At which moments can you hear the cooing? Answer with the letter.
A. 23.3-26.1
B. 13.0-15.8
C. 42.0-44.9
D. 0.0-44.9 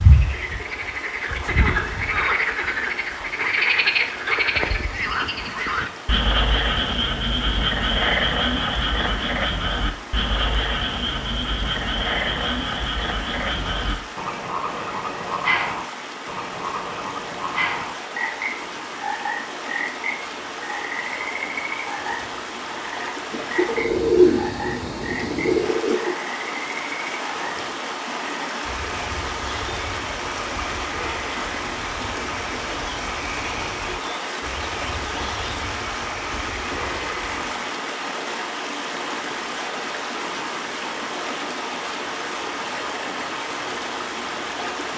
A.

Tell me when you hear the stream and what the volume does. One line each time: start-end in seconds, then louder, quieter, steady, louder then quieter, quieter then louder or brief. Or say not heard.
0.0-44.9 louder.